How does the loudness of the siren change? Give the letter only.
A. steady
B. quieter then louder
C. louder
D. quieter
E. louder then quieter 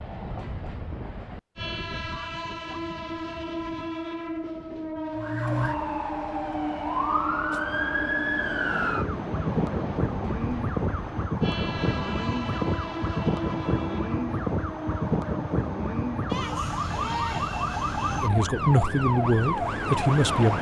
A.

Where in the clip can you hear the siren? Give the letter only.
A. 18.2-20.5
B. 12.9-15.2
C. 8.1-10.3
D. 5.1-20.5
D.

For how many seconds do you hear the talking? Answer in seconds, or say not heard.
2 s.